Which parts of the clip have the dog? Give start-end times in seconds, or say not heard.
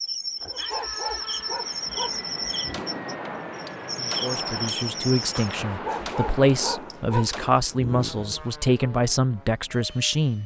0.4-2.9, 5.5-8.4.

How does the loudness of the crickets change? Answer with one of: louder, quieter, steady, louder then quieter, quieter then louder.
steady.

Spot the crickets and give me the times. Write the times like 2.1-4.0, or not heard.
0.0-5.6.